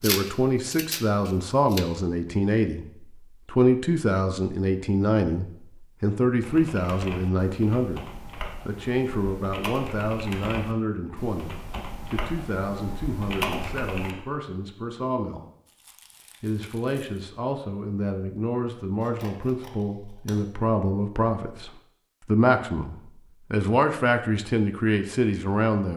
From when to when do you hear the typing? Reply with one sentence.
The typing can be heard from 6.4 to 14.2 s.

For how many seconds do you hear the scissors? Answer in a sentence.
The scissors can be heard for 3 seconds in total.